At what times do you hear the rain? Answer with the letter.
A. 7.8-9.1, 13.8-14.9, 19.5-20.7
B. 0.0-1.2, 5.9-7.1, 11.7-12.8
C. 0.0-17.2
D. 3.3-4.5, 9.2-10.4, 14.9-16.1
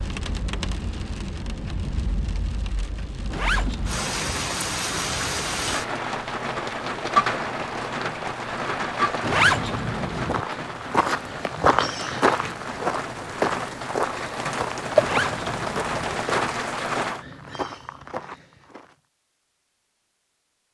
C.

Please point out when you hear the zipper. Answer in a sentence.
You can hear the zipper from 3.3 to 4.5 s, from 9.2 to 10.4 s and from 14.9 to 16.1 s.